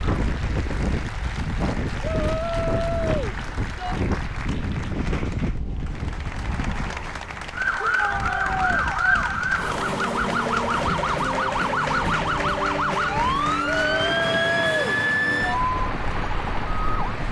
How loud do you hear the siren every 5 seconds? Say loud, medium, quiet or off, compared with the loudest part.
off, loud, loud, loud.